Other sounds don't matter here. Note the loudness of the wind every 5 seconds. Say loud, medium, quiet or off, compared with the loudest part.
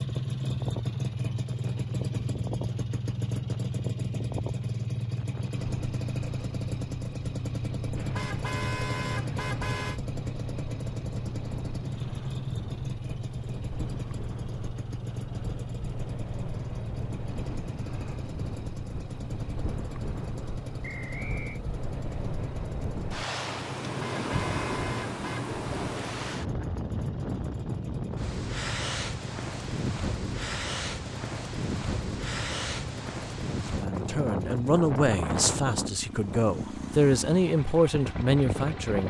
medium, medium, medium, medium, loud, loud, loud, loud.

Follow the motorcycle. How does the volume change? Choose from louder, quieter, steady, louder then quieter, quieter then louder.
quieter.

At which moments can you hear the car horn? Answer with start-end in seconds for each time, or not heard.
8.0-10.0, 23.9-25.5.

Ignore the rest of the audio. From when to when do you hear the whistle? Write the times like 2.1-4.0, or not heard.
20.8-21.6.